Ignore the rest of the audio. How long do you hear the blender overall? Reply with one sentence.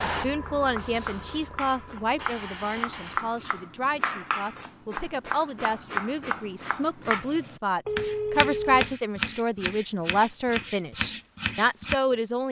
You can't hear the blender here.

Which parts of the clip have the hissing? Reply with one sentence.
You can hear the hissing from 0.0 to 3.2 s.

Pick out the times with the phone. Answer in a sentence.
You can hear the phone from 7.8 to 8.9 s.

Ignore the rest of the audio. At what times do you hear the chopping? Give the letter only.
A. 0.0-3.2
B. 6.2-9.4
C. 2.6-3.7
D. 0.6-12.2
D.